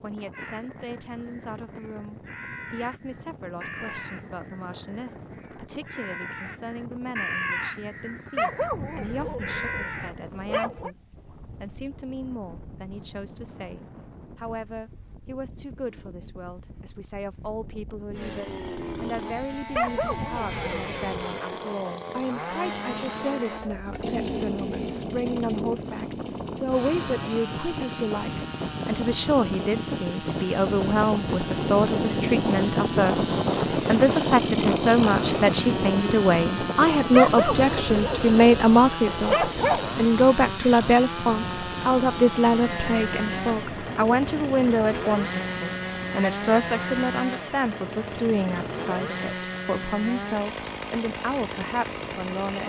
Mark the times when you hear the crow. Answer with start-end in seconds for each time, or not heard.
0.3-10.2.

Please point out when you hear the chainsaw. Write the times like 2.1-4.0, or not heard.
18.1-52.6.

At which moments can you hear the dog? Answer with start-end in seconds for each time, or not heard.
8.3-10.9, 19.8-21.3, 37.1-40.0.